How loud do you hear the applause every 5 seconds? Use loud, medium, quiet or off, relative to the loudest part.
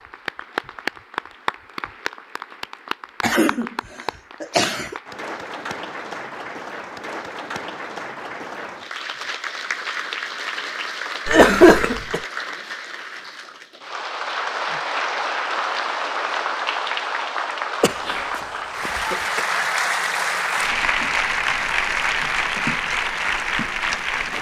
medium, medium, medium, loud, loud.